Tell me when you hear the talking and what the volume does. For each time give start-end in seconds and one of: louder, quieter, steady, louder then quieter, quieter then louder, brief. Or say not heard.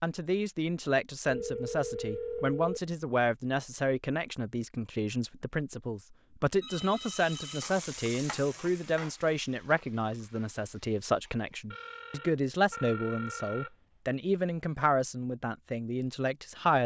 0.0-16.8 steady.